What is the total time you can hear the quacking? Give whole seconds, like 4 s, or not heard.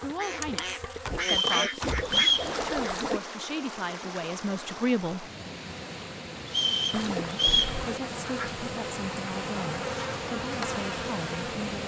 5 s.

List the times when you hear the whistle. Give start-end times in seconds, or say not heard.
1.2-2.5, 6.5-7.8.